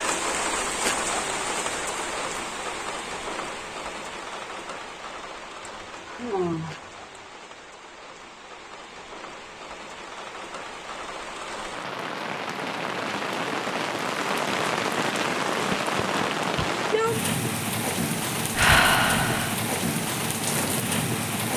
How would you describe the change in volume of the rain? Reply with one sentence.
The volume of the rain goes down, then up.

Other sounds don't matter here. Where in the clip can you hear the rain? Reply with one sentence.
You can hear the rain from 0.0 to 21.5 s.